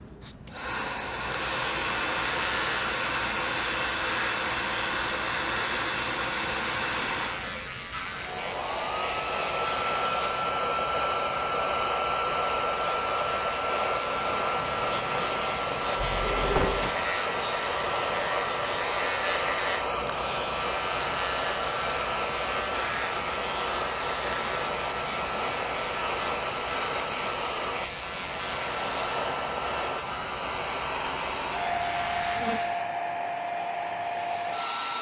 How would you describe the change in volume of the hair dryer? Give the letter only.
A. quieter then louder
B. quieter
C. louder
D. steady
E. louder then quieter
D.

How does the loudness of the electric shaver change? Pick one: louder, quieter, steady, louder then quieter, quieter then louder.
steady.